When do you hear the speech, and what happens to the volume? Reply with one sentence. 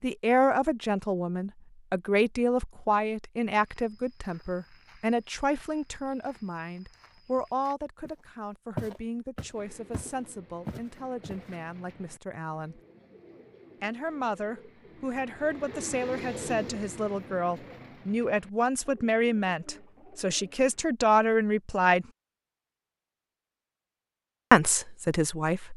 You can hear the speech from 0.0 to 12.8 s, getting quieter; from 13.8 to 22.1 s, getting louder; and briefly from 24.5 to 25.7 s.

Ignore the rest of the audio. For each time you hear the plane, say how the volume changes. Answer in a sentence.
The plane can't be heard in this clip.